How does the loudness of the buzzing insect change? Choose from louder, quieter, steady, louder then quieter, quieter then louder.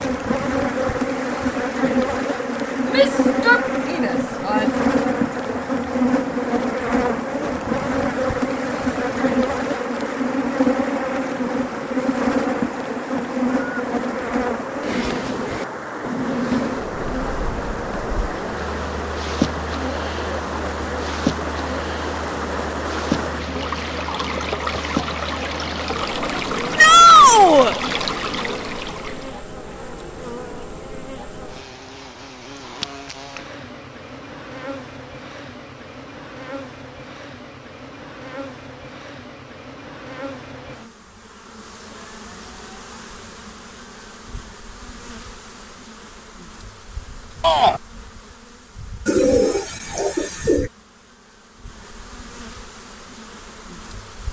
quieter.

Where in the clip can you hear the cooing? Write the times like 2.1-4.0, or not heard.
49.0-50.7.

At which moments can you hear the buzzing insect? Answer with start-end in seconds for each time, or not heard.
0.0-54.2.